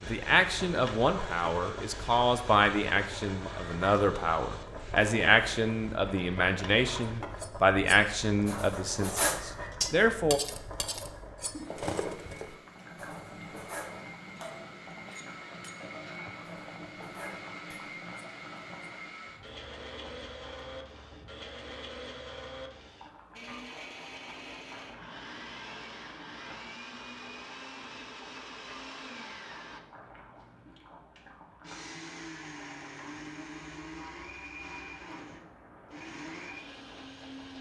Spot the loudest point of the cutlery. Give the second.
9 s.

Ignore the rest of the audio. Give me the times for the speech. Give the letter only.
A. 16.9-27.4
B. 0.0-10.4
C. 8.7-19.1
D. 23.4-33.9
B.